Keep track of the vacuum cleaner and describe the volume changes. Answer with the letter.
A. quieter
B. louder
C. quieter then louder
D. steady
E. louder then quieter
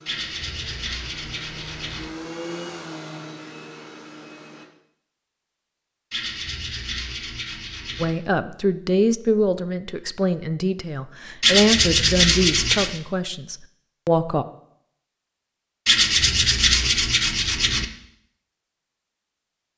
E.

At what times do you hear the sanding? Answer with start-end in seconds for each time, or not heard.
0.1-2.0, 6.1-8.1, 11.4-13.0, 15.8-17.9.